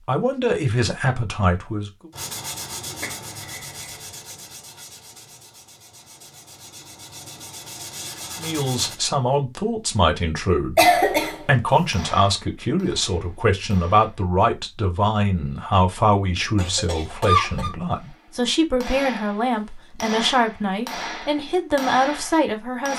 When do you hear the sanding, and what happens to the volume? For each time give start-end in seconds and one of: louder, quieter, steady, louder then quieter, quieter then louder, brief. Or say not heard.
2.1-8.9 quieter then louder.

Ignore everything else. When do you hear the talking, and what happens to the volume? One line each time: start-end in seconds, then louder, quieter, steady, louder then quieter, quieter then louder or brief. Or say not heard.
0.1-2.1 brief
8.3-22.9 steady.